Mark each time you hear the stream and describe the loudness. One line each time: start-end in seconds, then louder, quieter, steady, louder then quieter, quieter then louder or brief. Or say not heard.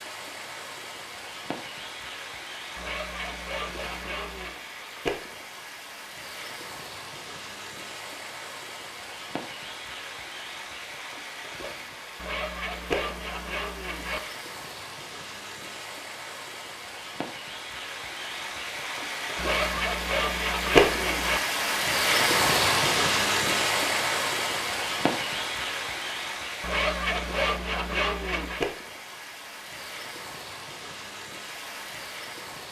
0.0-32.6 louder then quieter.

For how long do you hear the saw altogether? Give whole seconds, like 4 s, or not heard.
8 s.